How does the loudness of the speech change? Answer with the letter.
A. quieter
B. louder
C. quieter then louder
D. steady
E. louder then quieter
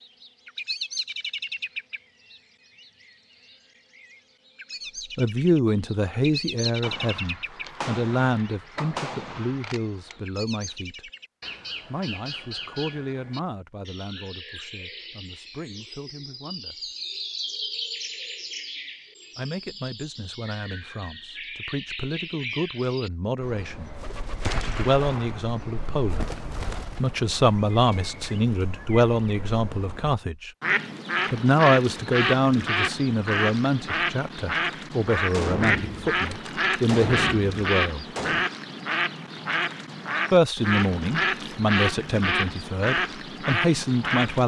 C.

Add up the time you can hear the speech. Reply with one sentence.
The speech can be heard for 33 seconds in total.